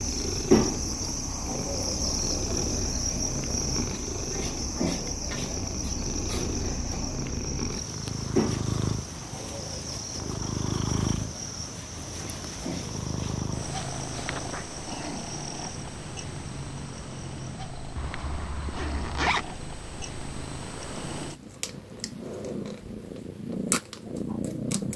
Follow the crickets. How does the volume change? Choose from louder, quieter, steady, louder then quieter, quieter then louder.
quieter.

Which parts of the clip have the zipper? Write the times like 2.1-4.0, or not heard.
4.8-5.5, 13.8-14.7, 17.9-19.4.